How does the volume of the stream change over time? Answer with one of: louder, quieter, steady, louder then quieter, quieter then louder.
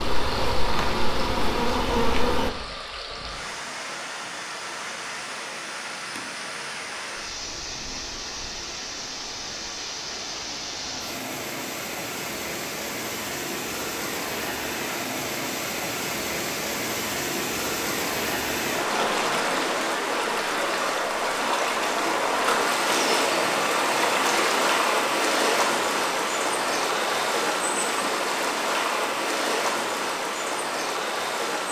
louder.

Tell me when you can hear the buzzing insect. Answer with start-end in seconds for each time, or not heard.
0.0-2.5.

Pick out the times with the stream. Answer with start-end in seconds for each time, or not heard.
0.0-31.6.